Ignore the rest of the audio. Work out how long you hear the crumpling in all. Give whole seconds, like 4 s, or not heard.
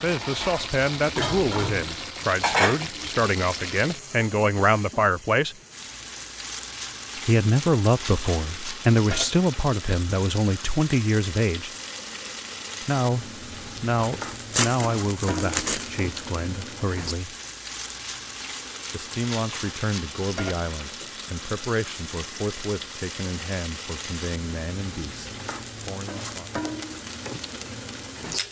2 s.